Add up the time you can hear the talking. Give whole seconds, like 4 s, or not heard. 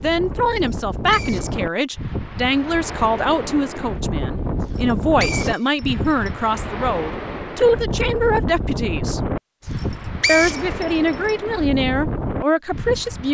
12 s.